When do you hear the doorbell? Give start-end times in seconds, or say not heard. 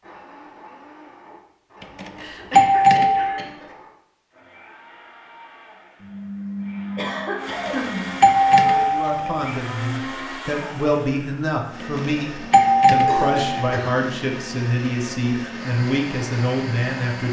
2.0-3.5, 7.7-9.4, 11.9-13.8.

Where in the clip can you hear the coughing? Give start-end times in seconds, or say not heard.
2.1-3.8, 6.0-8.2, 13.1-14.1.